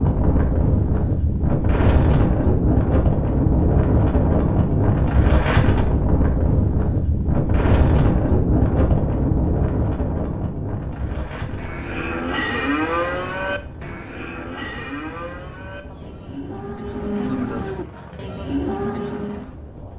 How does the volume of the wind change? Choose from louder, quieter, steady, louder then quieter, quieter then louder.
quieter.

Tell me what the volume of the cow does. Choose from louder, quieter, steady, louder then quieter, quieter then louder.
quieter then louder.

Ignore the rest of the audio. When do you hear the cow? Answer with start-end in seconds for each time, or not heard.
11.6-19.6.